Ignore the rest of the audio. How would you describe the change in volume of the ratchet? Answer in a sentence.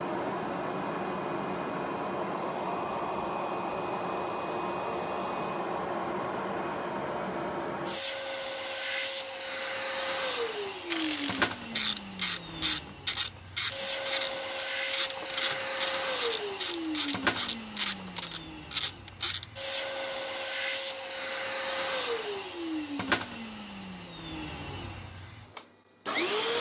The volume of the ratchet stays about the same.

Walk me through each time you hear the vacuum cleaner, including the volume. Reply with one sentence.
The vacuum cleaner can be heard from 0.0 to 26.5 s, at a steady volume.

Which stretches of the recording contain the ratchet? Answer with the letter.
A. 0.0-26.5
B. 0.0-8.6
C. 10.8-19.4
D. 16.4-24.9
C.